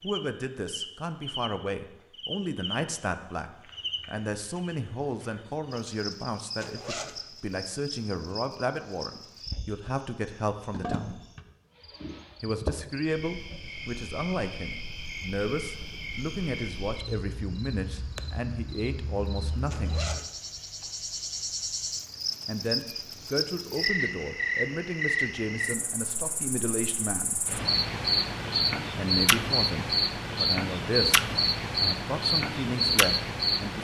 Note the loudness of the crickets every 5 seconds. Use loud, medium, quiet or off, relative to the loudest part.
quiet, quiet, quiet, quiet, medium, loud, loud.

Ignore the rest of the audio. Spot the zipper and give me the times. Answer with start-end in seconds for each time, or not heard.
6.6-7.2, 19.7-20.3.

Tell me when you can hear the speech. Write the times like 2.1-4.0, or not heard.
0.0-11.2, 12.4-20.0, 22.4-27.4, 28.9-33.8.